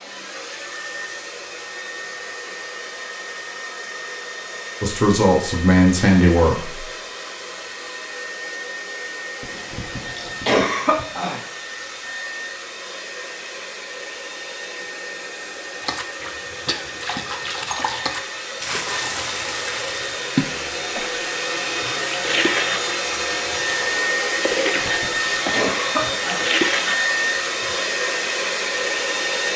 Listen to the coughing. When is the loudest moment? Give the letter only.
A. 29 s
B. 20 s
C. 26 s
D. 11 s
D.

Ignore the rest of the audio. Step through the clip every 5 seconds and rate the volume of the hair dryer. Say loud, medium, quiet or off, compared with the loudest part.
medium, medium, medium, medium, loud, loud.